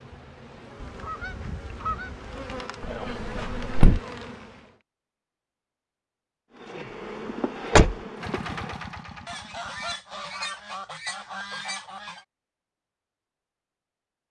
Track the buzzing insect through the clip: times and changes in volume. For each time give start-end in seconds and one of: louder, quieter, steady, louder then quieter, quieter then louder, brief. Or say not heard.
0.0-4.8 louder
6.5-8.8 brief.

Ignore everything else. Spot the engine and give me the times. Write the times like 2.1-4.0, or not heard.
8.2-10.0.